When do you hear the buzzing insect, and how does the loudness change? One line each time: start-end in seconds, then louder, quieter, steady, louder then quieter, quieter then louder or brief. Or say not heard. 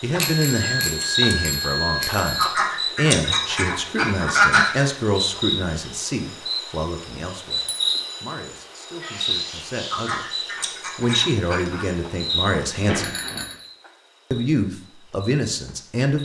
0.0-16.1 quieter.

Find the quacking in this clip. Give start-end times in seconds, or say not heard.
2.4-4.8, 9.9-11.8.